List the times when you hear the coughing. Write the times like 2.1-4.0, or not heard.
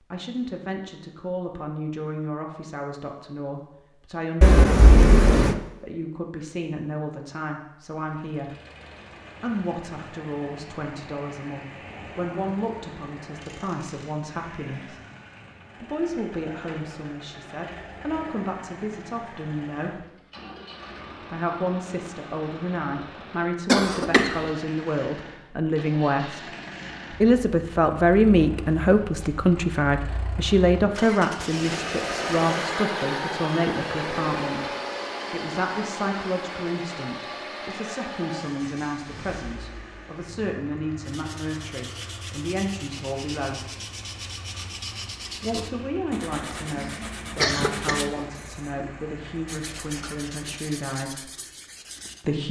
4.4-5.5, 23.6-24.4, 47.4-48.2.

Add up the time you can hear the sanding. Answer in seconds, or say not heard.
11 s.